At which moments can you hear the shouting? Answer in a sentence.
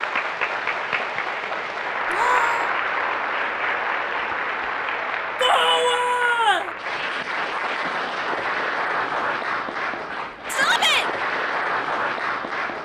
The shouting can be heard from 2.0 to 2.7 s, from 5.4 to 6.7 s and from 10.5 to 11.1 s.